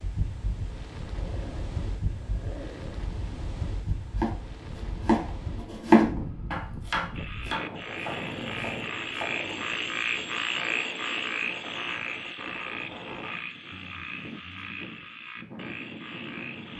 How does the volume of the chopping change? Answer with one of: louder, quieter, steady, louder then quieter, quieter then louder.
louder then quieter.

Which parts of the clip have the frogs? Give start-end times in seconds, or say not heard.
7.1-16.7.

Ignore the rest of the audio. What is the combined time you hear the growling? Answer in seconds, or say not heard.
4 s.